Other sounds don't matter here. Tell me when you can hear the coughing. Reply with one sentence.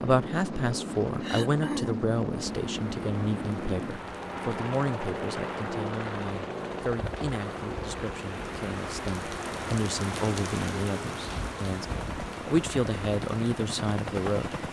You can hear the coughing from 1.2 to 2.1 s.